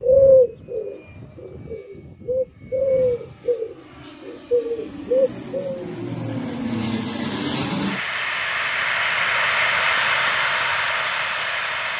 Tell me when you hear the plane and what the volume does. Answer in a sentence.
You can hear the plane from 0.0 to 11.9 s, getting louder.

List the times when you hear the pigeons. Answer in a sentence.
You can hear the pigeons from 0.0 to 5.8 s.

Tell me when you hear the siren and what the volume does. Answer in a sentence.
The siren can't be heard in this clip.